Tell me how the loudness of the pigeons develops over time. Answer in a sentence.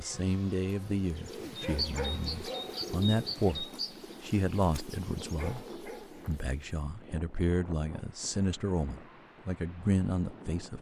The loudness of the pigeons goes down.